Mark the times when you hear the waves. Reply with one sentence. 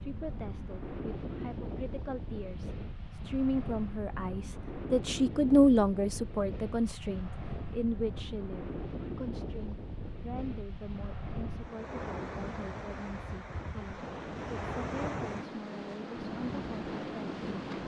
You can hear the waves from 0.0 to 17.8 s.